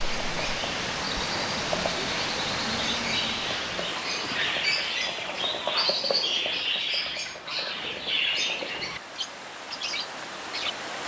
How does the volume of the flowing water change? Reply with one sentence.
The volume of the flowing water goes down, then up.